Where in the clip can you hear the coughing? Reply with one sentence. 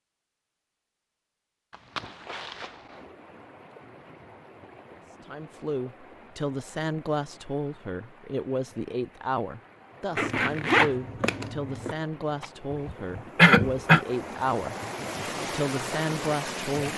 The coughing can be heard from 12.4 to 14.0 s.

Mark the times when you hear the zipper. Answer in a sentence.
The zipper can be heard from 1.7 to 3.0 s and from 10.2 to 11.9 s.